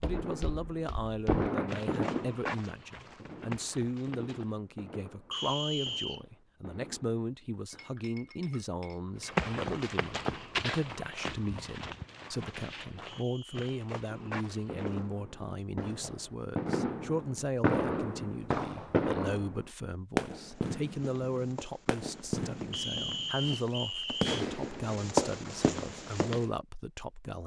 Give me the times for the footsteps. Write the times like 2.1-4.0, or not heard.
0.0-4.5, 9.2-15.2, 20.5-26.4.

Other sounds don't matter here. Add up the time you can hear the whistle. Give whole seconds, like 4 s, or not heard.
3 s.